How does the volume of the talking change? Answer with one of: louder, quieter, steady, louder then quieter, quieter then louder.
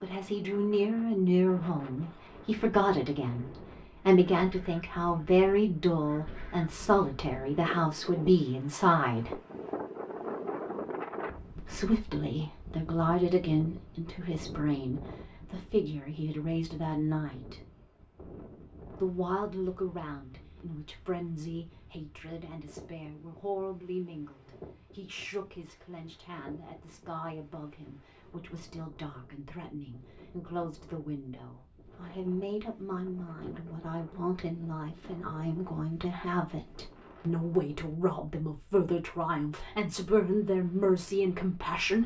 quieter then louder.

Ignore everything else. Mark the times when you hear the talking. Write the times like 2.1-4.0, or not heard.
0.0-9.4, 11.6-17.6, 18.9-42.0.